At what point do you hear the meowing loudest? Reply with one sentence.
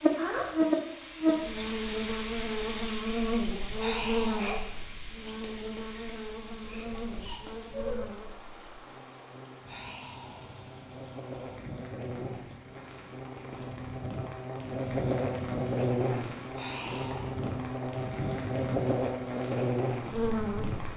The volume of the meowing peaks at 8 seconds.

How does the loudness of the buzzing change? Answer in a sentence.
The volume of the buzzing goes down, then up.